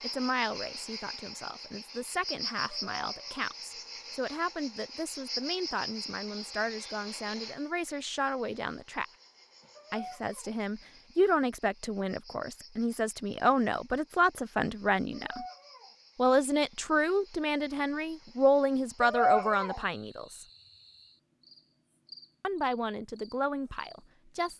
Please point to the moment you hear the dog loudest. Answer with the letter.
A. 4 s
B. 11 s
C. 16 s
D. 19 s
D.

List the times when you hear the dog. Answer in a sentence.
You can hear the dog from 2.7 to 3.5 s, from 9.8 to 10.6 s, from 15.1 to 15.9 s and from 19.0 to 19.8 s.